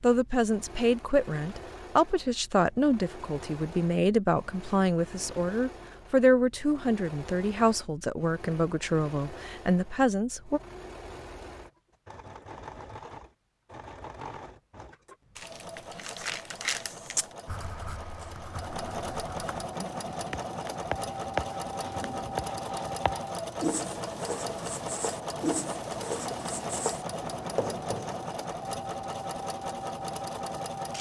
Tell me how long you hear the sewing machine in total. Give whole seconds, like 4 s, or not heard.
31 s.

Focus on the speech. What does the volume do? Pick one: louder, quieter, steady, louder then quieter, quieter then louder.
steady.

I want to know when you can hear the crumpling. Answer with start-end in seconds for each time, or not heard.
15.3-17.3.